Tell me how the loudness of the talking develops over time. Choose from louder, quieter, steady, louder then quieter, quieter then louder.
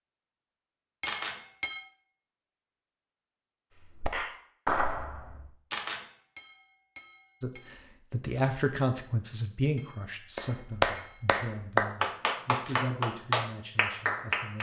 quieter.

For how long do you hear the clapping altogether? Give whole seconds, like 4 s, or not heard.
6 s.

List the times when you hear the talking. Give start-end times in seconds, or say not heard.
7.4-14.5.